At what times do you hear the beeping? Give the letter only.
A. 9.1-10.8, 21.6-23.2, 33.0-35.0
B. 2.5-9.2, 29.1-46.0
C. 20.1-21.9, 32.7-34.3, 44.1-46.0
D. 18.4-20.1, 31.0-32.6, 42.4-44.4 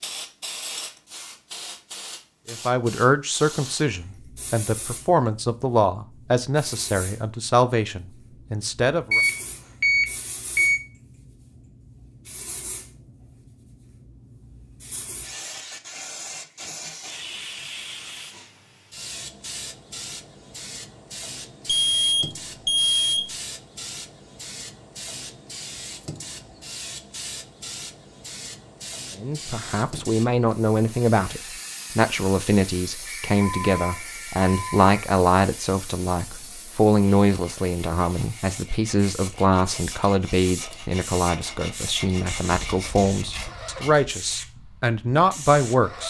A.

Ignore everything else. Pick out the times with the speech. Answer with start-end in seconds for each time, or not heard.
2.5-9.2, 29.1-46.0.